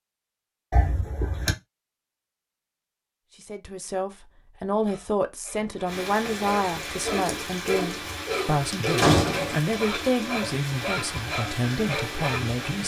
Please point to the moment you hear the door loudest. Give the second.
9 s.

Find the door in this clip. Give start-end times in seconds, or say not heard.
0.7-1.6, 5.5-6.5, 8.9-9.6.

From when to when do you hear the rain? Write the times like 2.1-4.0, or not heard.
5.8-12.8.